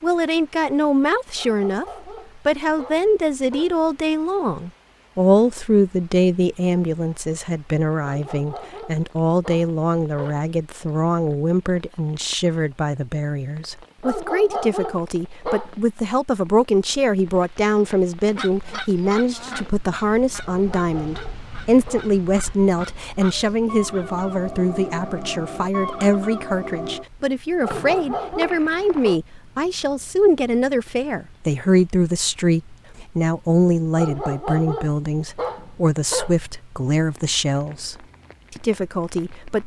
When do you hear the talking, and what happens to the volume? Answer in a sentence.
The talking can be heard briefly from 0.0 to 1.9 s; and from 2.5 to 39.6 s, at a steady volume.